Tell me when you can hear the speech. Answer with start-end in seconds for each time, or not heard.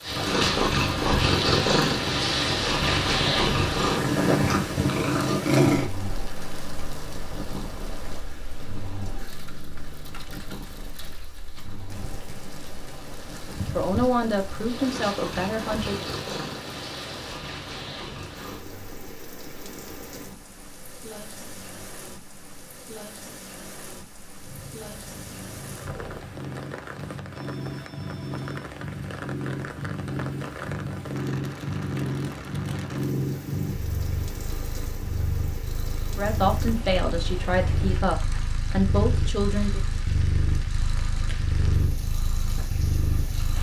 13.7-16.1, 36.1-39.8.